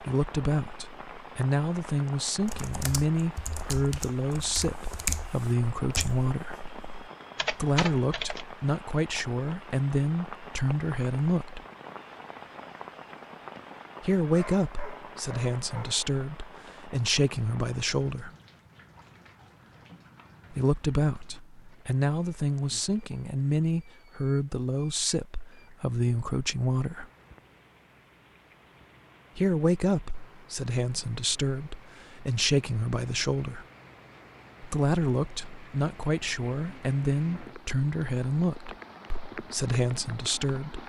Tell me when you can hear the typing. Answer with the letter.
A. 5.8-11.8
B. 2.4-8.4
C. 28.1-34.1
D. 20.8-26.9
B.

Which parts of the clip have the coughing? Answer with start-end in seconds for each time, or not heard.
not heard.